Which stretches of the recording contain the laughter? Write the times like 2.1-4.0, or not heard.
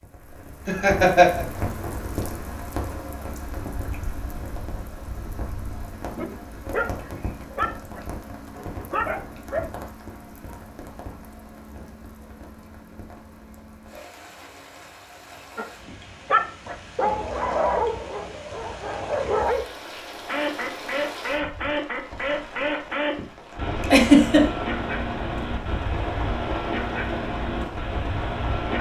0.7-1.4, 23.8-24.4.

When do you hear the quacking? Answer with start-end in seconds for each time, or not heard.
20.2-28.7.